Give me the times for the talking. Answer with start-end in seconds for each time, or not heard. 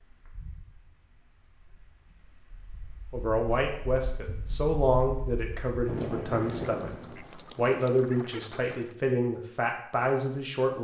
3.1-10.7.